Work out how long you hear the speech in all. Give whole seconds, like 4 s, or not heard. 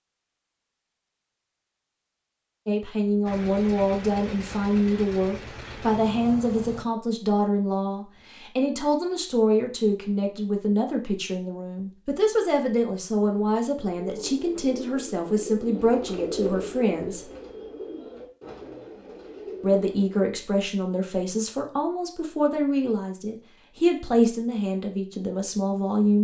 21 s.